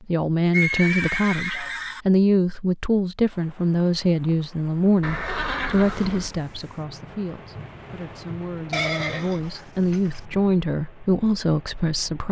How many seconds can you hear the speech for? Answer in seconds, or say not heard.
12 s.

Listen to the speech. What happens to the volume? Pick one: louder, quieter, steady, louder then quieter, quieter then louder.
quieter then louder.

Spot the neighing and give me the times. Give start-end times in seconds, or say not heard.
0.5-2.0, 5.0-6.3, 8.7-10.2.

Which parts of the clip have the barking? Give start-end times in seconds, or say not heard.
not heard.